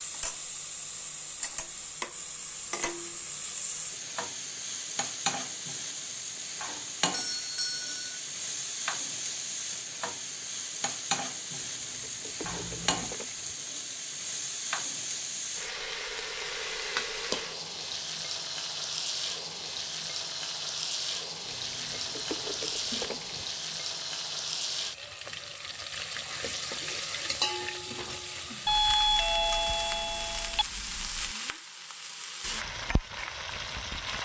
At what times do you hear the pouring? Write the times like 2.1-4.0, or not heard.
11.6-13.6, 21.4-23.4.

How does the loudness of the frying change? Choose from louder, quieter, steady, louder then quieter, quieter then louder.
steady.